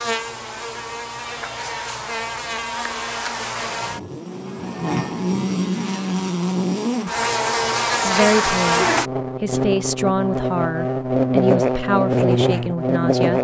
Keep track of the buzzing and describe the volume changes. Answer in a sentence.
The loudness of the buzzing goes up.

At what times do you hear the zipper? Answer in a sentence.
You can't hear the zipper here.